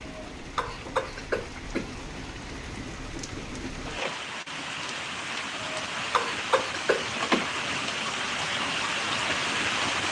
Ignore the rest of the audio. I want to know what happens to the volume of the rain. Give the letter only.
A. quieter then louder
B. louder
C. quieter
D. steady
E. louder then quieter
B.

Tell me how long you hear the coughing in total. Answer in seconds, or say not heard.
4 s.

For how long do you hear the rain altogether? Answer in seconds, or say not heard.
10 s.